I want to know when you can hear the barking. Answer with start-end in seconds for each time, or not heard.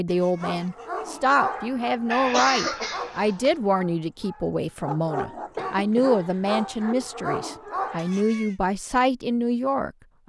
0.3-8.2.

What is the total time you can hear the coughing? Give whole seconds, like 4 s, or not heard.
3 s.